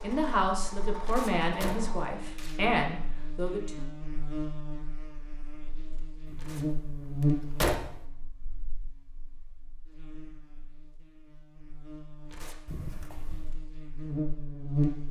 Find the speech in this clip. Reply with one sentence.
The speech can be heard from 0.0 to 3.9 s.